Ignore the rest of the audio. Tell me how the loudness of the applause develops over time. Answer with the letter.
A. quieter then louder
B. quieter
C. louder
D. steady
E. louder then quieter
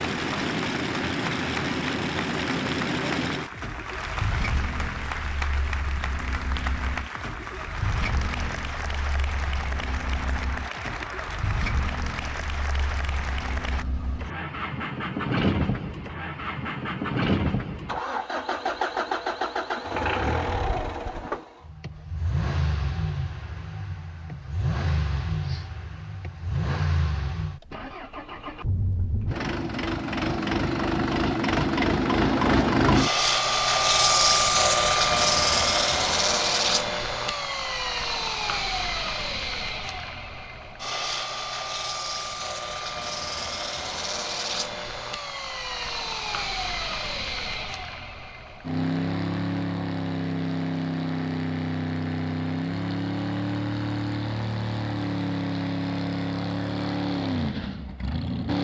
D.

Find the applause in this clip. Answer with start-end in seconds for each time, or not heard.
0.0-13.8.